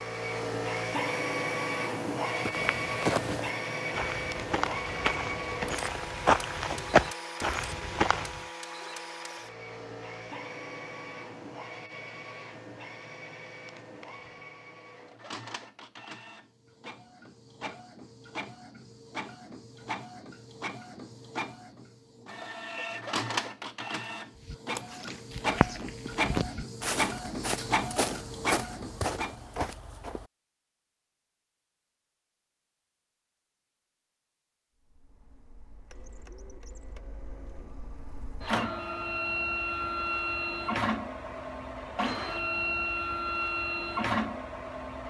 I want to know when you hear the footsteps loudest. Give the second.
7 s.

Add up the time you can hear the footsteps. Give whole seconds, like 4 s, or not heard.
12 s.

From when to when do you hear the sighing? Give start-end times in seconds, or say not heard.
not heard.